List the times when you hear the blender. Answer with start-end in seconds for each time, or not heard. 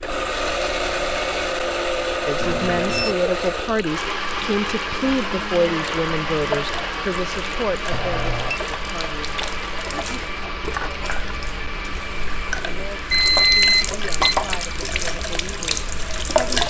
0.0-16.6.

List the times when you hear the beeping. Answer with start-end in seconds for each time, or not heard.
2.4-3.1, 7.9-8.6, 13.1-14.6.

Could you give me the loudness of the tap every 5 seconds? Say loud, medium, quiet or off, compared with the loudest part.
quiet, medium, medium, loud.